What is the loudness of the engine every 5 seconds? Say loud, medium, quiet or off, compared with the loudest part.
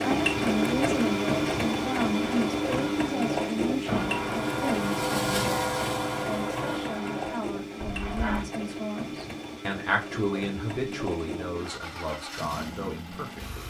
loud, medium, medium.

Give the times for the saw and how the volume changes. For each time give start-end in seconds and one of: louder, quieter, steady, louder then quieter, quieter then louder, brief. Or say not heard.
0.2-8.5 louder then quieter.